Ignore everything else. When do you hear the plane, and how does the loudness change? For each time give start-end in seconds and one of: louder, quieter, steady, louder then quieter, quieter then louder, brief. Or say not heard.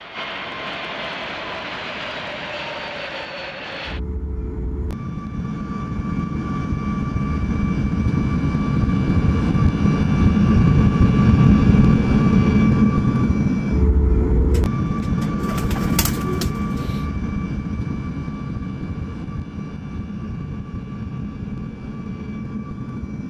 0.0-23.2 louder then quieter.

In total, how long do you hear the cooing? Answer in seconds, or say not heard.
3 s.